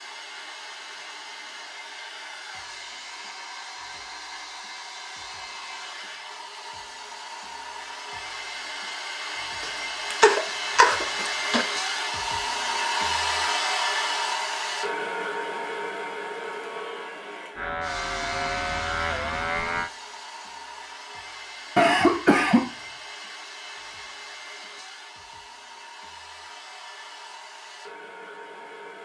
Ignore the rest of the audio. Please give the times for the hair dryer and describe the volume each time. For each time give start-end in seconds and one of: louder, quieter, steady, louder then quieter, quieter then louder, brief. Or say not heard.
0.0-29.0 louder then quieter.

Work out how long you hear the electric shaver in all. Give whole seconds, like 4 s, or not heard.
2 s.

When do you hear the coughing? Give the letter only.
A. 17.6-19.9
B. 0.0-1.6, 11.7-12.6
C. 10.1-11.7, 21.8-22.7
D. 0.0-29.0
C.